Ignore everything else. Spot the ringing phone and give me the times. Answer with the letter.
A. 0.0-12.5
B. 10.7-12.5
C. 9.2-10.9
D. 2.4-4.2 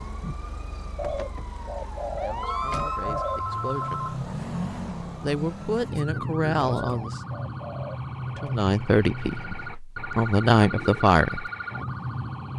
D.